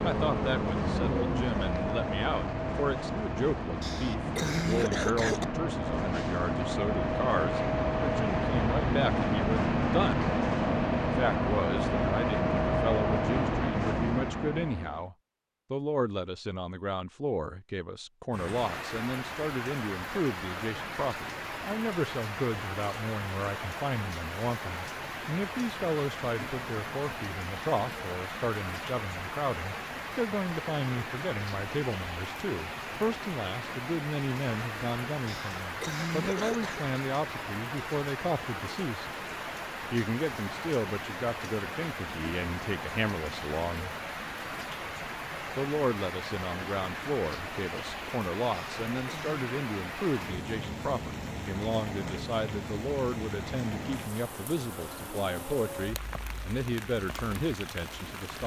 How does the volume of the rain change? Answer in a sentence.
The volume of the rain stays about the same.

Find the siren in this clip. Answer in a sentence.
You can't hear the siren here.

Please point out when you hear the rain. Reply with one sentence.
The rain can be heard from 18.3 to 58.4 s.